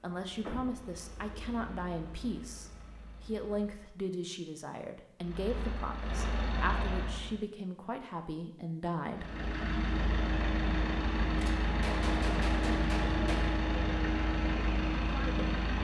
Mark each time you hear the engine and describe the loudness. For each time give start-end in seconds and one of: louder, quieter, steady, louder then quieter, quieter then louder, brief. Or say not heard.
0.0-4.0 quieter
5.2-7.3 brief
9.1-15.8 steady.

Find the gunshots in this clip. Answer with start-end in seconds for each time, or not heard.
11.3-13.6.